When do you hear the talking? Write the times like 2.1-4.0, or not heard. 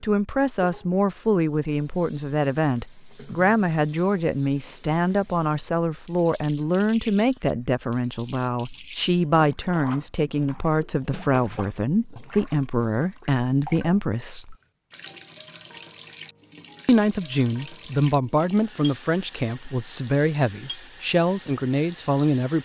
0.0-14.6, 16.9-22.6.